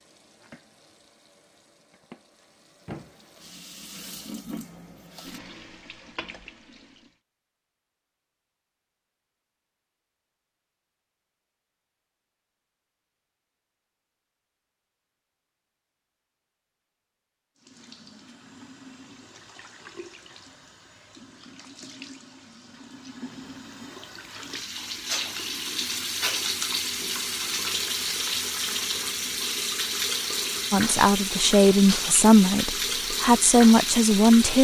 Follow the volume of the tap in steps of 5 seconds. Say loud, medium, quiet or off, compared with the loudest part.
quiet, quiet, off, quiet, quiet, loud, loud.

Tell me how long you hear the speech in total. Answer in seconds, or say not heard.
4 s.